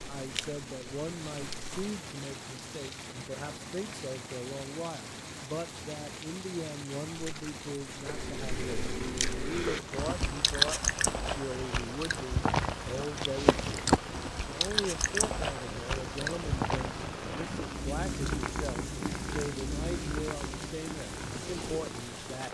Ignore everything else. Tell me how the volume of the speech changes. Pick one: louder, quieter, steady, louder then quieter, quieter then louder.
steady.